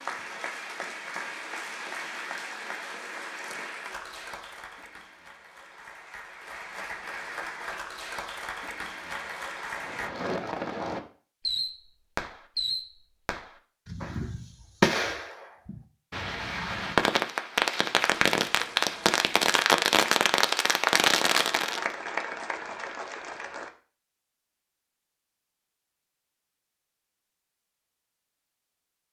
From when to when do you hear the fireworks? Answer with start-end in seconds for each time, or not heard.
9.8-21.9.